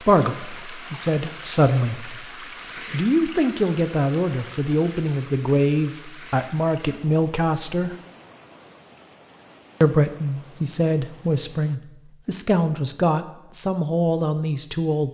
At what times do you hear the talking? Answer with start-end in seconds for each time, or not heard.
0.1-2.2, 2.9-8.0, 9.8-15.0.